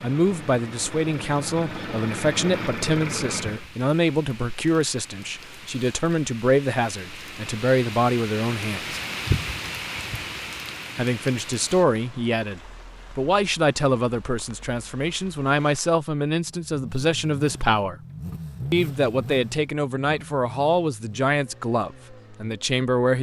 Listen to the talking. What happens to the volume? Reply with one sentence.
The loudness of the talking stays about the same.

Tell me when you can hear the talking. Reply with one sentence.
The talking can be heard from 0.0 to 9.0 s, from 10.9 to 17.9 s and from 18.7 to 23.1 s.